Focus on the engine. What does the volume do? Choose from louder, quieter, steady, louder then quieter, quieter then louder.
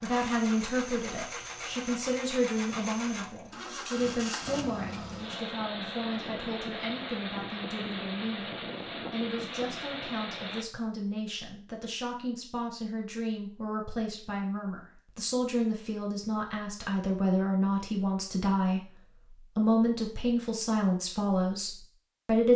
steady.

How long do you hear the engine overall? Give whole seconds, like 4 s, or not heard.
11 s.